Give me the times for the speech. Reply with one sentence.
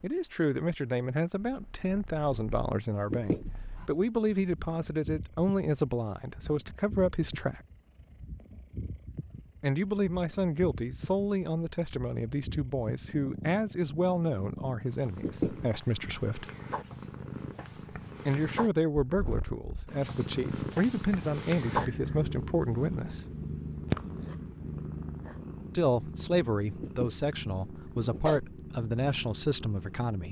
The speech can be heard from 0.0 to 7.6 s, from 9.6 to 16.4 s, from 18.2 to 23.2 s and from 25.8 to 30.2 s.